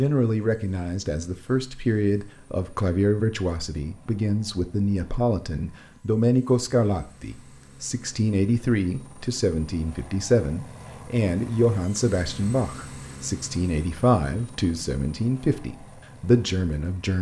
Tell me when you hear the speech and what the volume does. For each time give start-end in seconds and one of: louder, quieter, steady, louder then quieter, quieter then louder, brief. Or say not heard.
0.0-17.1 steady.